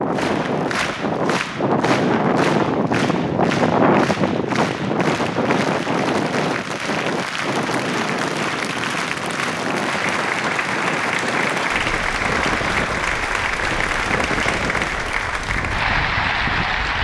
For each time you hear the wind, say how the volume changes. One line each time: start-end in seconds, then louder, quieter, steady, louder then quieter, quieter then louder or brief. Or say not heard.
0.0-17.0 quieter.